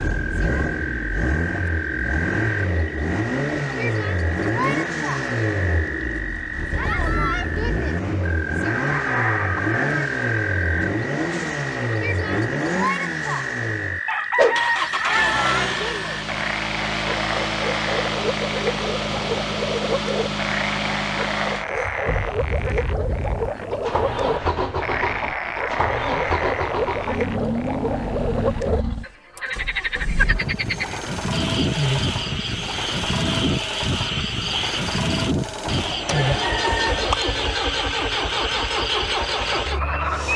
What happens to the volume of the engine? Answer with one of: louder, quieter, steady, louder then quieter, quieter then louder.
steady.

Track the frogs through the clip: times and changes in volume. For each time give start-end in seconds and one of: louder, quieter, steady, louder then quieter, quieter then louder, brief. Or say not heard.
0.0-40.3 steady.